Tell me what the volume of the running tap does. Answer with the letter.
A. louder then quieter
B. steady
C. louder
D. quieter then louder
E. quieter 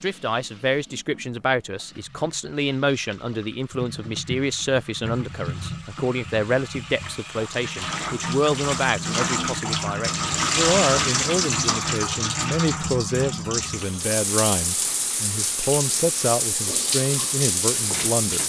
C.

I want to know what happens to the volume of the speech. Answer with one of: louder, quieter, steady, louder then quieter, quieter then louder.
steady.